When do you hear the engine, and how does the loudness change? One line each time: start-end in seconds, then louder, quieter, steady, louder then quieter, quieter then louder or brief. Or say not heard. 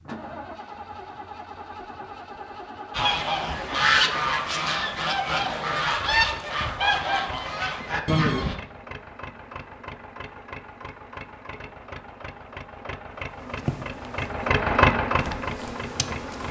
0.0-16.4 louder.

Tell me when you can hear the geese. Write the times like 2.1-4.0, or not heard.
2.9-8.6.